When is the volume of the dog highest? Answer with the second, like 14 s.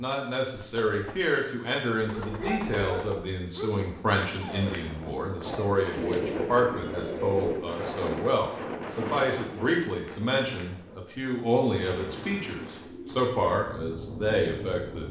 3 s.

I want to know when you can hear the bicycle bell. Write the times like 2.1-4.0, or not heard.
not heard.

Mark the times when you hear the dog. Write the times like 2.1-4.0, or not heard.
2.1-5.9.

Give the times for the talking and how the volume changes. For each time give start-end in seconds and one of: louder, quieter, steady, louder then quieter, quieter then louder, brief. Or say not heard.
0.0-15.0 steady.